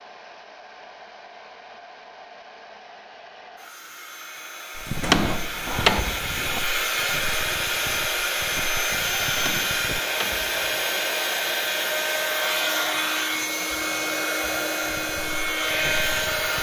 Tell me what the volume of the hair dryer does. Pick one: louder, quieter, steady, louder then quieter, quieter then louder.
louder.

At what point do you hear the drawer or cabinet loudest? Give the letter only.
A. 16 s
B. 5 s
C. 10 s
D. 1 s
B.